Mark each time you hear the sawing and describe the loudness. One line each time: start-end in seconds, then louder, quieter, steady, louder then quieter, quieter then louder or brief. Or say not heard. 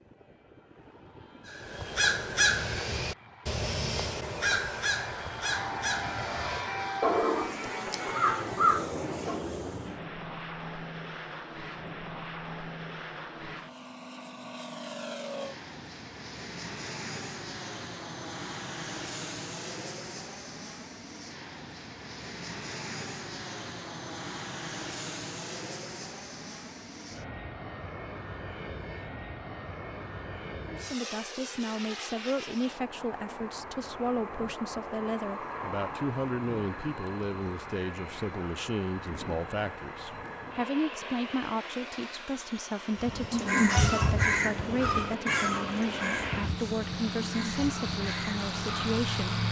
not heard.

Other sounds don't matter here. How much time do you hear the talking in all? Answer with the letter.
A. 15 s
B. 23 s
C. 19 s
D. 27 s
C.